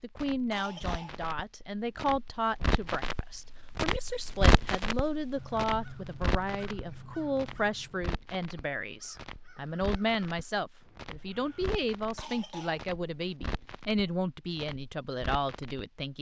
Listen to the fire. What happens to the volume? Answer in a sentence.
The volume of the fire goes up, then down.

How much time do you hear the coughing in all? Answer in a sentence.
The coughing can be heard for 2 seconds in total.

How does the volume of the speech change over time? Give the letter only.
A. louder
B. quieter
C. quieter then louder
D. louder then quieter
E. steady
E.